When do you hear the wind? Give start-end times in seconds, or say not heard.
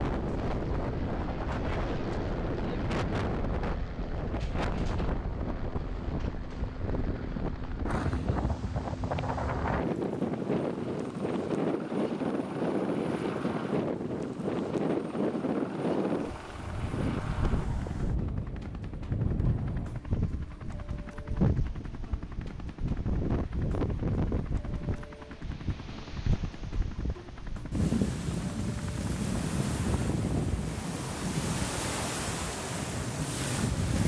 0.0-34.0.